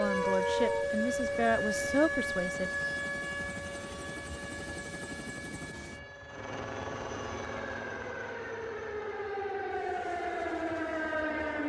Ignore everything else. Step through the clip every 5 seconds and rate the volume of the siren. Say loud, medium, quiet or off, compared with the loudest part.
loud, medium, loud.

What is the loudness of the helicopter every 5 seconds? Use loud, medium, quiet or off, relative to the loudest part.
loud, loud, quiet.